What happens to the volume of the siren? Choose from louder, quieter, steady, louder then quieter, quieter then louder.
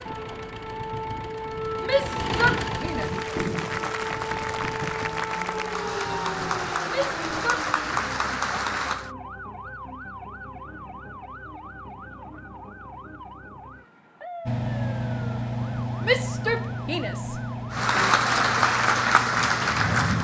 quieter.